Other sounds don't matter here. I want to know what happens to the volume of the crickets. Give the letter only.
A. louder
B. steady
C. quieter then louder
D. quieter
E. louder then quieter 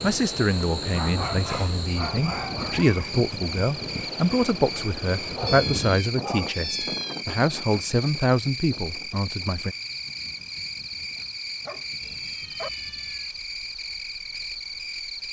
B.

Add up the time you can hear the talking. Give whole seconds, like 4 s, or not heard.
10 s.